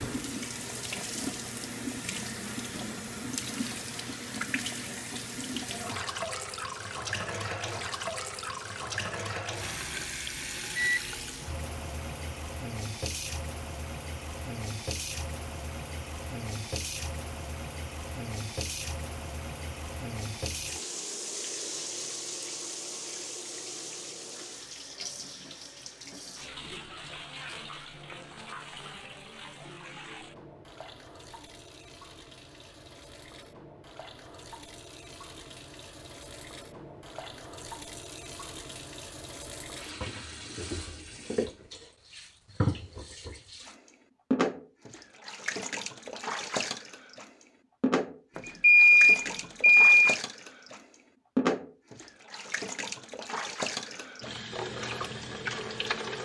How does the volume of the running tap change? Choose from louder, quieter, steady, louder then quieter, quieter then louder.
quieter then louder.